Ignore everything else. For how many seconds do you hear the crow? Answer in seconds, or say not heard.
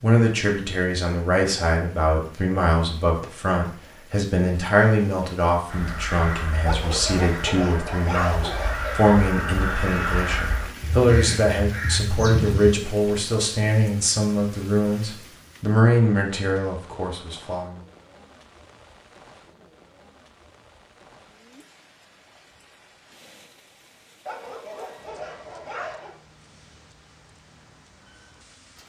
7 s.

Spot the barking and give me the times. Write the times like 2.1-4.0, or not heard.
6.7-9.0, 24.2-26.1.